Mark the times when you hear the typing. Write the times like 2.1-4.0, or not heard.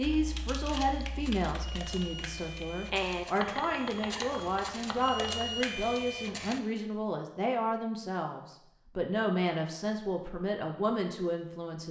0.0-5.3.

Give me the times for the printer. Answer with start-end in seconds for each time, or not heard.
0.0-6.6.